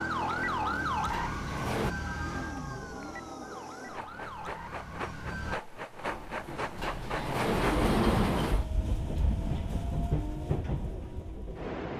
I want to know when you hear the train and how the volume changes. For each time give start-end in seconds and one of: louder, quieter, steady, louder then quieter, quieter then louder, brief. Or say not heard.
0.0-11.9 louder.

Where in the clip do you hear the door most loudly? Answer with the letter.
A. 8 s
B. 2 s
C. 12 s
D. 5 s
A.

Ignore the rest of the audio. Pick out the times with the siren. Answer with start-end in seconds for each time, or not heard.
0.0-5.6.